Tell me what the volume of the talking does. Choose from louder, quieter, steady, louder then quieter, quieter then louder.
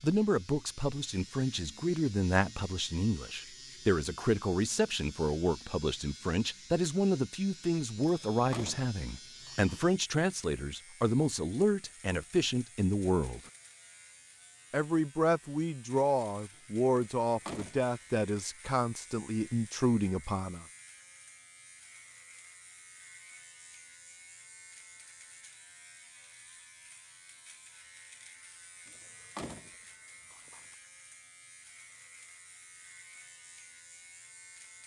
steady.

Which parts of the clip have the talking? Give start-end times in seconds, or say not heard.
0.0-13.4, 14.7-20.6.